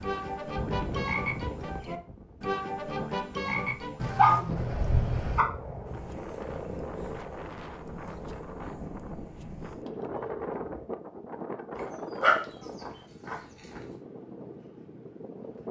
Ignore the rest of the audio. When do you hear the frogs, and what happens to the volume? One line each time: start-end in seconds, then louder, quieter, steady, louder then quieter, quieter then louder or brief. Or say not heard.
0.0-10.9 quieter.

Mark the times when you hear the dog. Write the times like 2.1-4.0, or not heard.
4.0-5.5, 11.8-13.8.